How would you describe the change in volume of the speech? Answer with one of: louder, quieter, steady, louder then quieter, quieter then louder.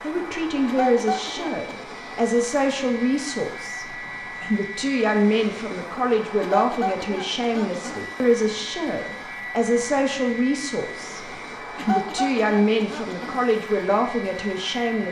steady.